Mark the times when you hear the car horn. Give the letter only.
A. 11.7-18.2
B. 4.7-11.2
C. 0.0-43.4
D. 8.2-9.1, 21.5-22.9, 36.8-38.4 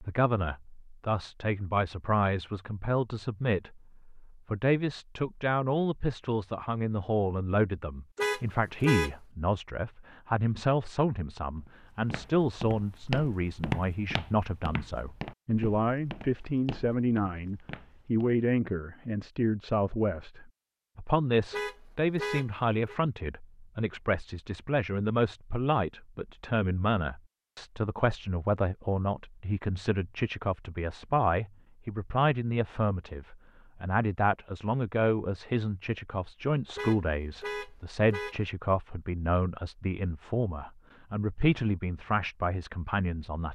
D.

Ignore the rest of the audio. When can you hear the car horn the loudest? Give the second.
9 s.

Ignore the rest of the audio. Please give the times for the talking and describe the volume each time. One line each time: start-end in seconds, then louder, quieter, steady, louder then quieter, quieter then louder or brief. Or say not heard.
0.0-43.4 steady.